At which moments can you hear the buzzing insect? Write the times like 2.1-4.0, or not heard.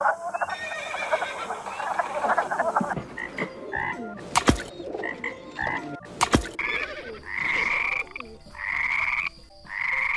1.9-3.9.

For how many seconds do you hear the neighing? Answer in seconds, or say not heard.
3 s.